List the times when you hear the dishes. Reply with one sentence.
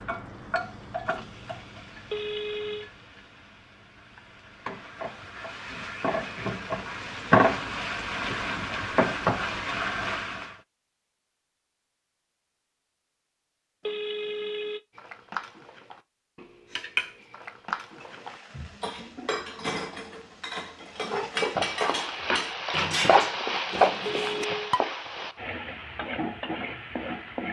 The dishes can be heard from 14.9 to 24.9 s.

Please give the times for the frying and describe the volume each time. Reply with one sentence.
You can hear the frying from 0.0 to 10.6 s, getting quieter then louder; and from 17.9 to 27.4 s, getting louder then quieter.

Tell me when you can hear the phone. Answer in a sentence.
You can hear the phone from 2.1 to 2.9 s, from 13.8 to 14.8 s and from 24.1 to 24.8 s.